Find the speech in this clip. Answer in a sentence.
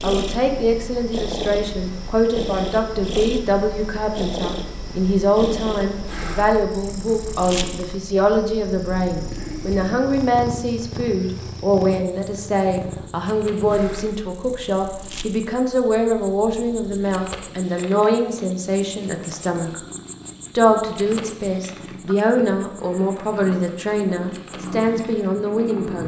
You can hear the speech from 0.0 to 19.8 s and from 20.6 to 26.0 s.